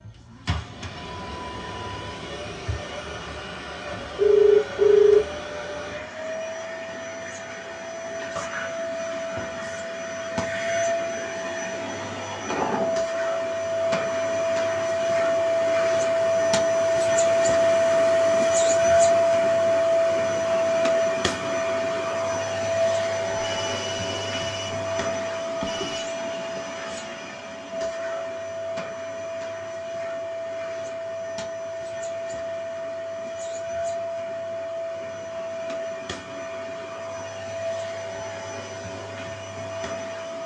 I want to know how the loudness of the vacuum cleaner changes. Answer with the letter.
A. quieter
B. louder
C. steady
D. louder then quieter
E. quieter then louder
D.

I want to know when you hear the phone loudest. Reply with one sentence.
The loudest moment of the phone is at 5 seconds.